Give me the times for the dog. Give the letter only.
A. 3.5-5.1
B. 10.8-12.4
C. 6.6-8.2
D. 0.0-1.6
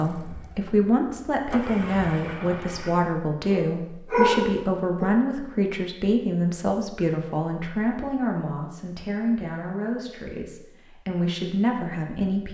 A.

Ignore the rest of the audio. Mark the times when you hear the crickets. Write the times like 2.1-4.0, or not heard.
not heard.